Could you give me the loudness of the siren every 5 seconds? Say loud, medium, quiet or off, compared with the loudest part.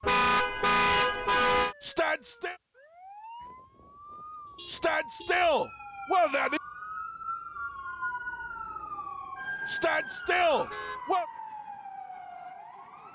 medium, loud, loud.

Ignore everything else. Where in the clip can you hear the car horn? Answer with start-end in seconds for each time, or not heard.
0.0-1.8, 4.5-5.4, 10.5-11.0.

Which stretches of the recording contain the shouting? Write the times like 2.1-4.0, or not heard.
1.8-2.5, 4.7-6.6, 9.7-11.2.